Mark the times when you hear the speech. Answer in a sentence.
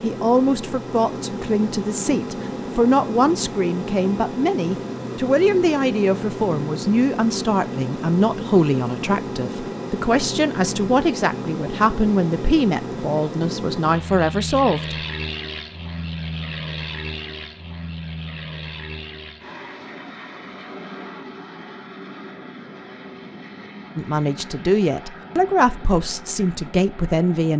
You can hear the speech from 0.0 to 14.9 s and from 23.9 to 27.5 s.